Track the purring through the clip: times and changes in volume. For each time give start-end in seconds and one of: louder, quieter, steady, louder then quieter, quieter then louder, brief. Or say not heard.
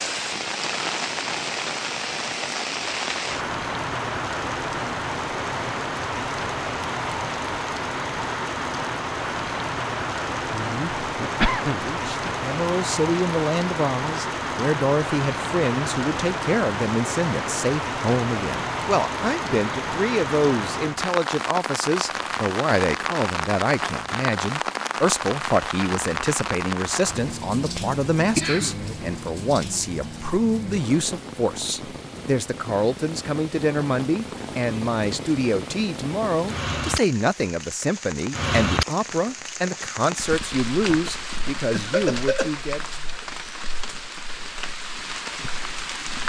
not heard.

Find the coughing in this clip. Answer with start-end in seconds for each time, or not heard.
10.5-11.9, 28.4-28.8, 41.7-42.5.